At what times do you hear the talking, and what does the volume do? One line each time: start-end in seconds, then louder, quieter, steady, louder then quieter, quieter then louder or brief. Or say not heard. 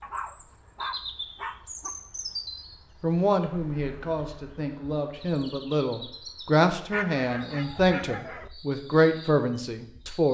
3.0-10.2 louder.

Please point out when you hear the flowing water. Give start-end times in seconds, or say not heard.
not heard.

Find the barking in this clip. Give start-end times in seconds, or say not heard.
0.0-1.9, 6.9-8.5.